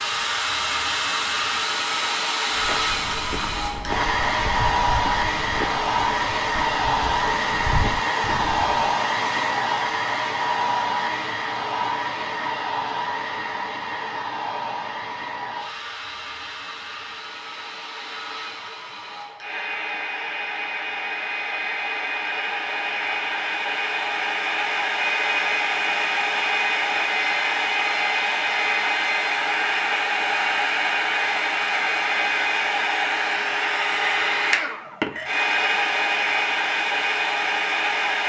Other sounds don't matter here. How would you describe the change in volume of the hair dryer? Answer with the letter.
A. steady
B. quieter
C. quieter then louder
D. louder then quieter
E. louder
C.